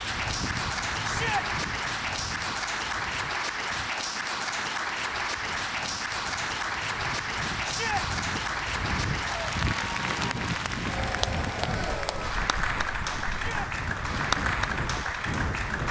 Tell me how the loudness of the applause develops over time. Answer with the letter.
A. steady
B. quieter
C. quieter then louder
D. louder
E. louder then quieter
A.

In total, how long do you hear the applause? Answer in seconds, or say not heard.
16 s.